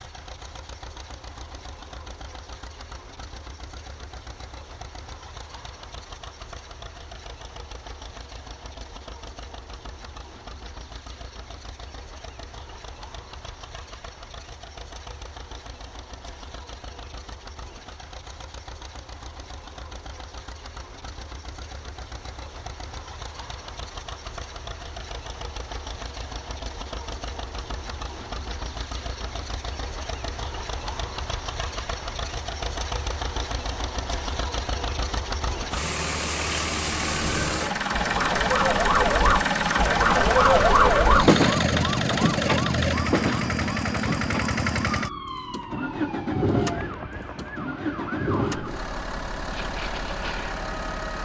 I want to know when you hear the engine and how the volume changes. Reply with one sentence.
The engine can be heard from 0.0 to 51.1 s, getting louder.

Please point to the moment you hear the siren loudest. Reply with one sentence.
The volume of the siren peaks at 41 seconds.